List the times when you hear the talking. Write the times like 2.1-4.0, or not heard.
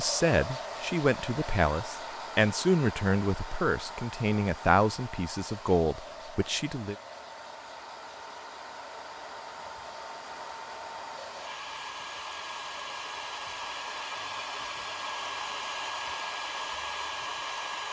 0.0-7.0.